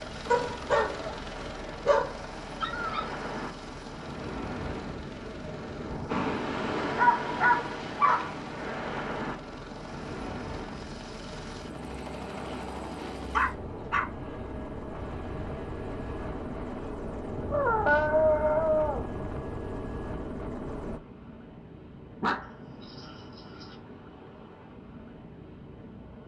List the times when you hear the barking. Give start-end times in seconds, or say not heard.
0.3-3.0, 6.8-8.3, 13.3-14.1, 17.5-19.1, 22.2-23.8.